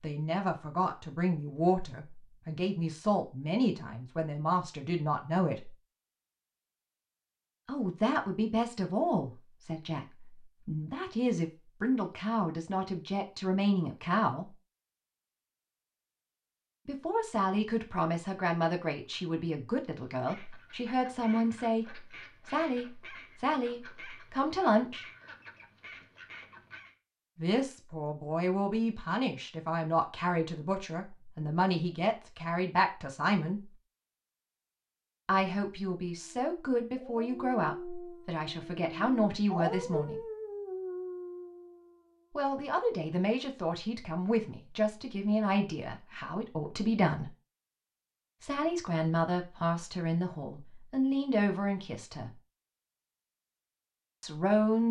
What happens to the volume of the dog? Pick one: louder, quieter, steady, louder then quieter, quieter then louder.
louder then quieter.